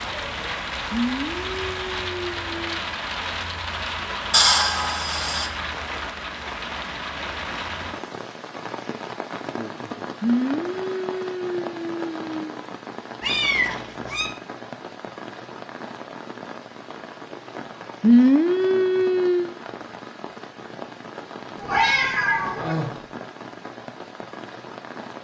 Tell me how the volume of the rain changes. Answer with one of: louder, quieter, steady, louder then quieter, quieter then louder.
quieter.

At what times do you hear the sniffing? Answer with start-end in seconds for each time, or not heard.
0.9-2.8, 10.2-12.4, 18.0-19.6.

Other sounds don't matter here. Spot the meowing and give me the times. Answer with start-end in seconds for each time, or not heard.
4.3-5.5, 13.2-14.3, 21.6-22.9.